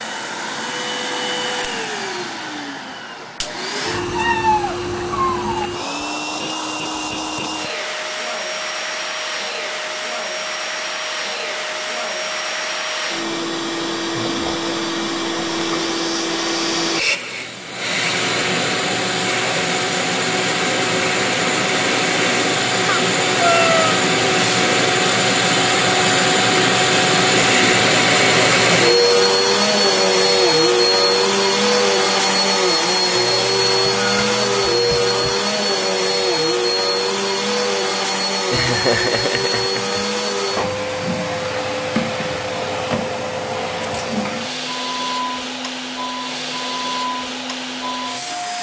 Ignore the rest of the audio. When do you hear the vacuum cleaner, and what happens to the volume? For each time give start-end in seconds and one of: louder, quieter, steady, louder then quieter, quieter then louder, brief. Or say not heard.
0.0-48.5 louder then quieter.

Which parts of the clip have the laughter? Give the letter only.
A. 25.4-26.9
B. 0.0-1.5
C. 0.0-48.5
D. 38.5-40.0
D.